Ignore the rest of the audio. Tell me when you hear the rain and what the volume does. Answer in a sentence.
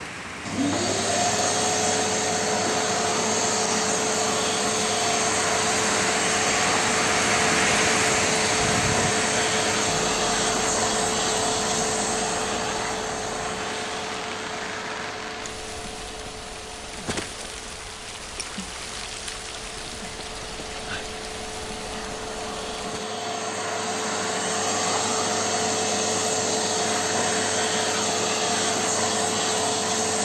You can hear the rain from 0.0 to 23.1 s, getting louder then quieter.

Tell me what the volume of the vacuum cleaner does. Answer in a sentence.
The volume of the vacuum cleaner goes down, then up.